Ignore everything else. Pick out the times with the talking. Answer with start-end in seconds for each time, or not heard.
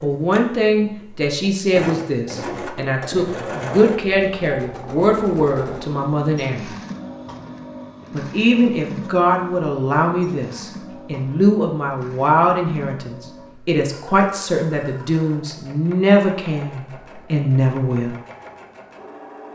0.0-6.7, 8.1-18.1.